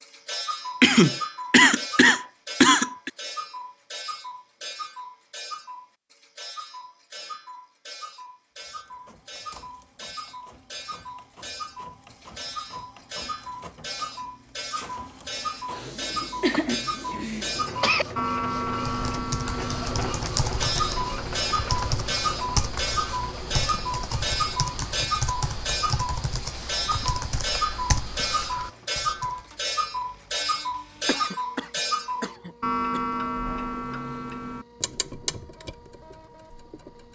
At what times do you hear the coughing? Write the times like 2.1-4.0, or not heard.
0.8-3.1, 16.4-18.1, 31.1-33.0.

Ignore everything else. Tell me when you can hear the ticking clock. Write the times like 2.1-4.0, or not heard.
0.0-37.0.